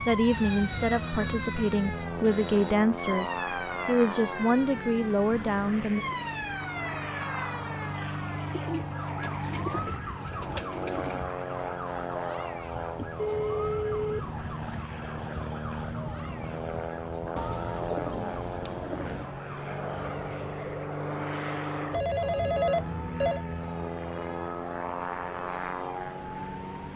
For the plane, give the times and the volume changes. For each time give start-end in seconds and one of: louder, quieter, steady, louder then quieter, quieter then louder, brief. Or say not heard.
0.0-26.9 steady.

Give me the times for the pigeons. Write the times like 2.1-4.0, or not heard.
8.5-11.2, 17.4-19.4.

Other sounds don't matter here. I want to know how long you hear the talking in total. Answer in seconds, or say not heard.
6 s.